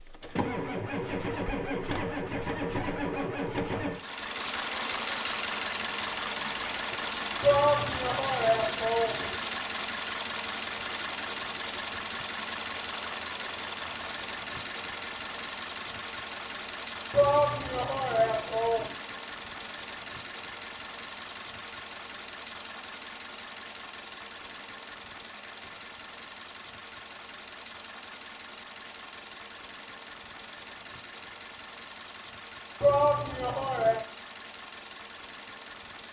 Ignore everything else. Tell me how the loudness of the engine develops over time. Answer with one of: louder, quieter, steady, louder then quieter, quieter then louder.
quieter.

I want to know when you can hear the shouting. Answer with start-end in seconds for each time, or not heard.
7.4-9.3, 17.1-18.9, 32.8-34.0.